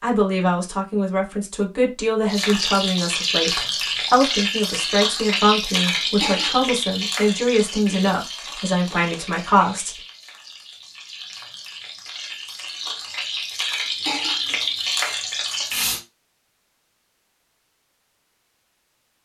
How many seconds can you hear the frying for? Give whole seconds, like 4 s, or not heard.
14 s.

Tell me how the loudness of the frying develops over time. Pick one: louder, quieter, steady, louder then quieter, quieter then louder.
quieter then louder.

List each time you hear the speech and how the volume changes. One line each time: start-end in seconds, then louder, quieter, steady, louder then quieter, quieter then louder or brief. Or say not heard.
0.0-9.9 steady.